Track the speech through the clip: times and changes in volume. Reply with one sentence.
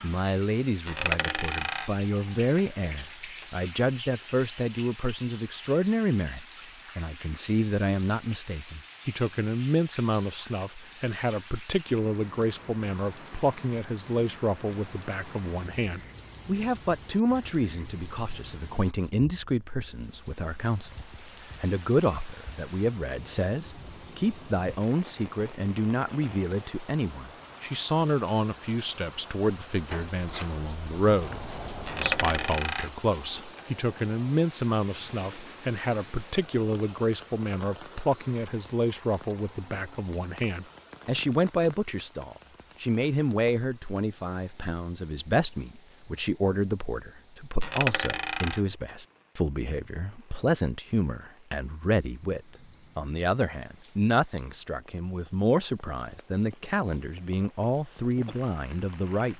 You can hear the speech from 0.0 to 59.3 s, at a steady volume.